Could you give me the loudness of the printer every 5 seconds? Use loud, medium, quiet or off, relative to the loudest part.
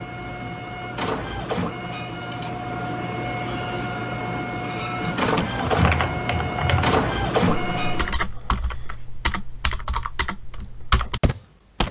medium, loud, off.